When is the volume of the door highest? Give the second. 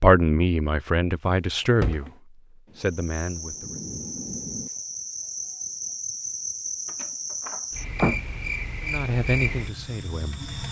8 s.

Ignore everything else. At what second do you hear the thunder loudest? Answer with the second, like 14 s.
4 s.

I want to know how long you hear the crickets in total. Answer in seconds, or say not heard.
8 s.